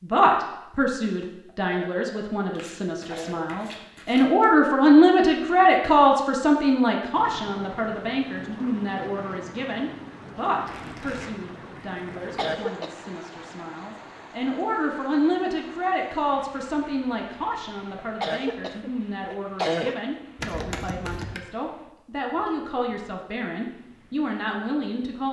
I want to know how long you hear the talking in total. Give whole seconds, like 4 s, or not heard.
25 s.